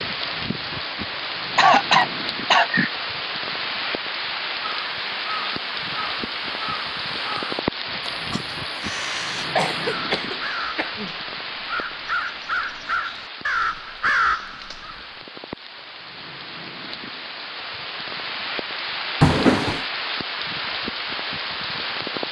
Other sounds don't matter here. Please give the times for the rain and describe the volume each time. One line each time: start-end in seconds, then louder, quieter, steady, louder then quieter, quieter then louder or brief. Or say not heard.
0.0-22.2 quieter then louder.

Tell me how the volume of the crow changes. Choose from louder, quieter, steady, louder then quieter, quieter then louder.
louder.